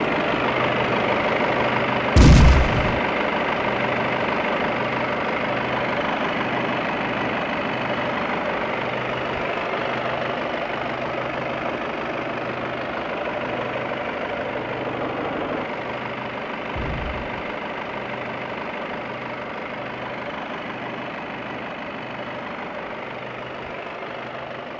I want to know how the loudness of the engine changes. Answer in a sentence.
The loudness of the engine goes down.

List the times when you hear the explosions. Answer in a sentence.
You can hear the explosions from 2.1 to 3.0 s and from 16.8 to 17.6 s.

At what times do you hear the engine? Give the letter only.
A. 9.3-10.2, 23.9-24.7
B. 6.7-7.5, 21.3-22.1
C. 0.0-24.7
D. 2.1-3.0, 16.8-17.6
C.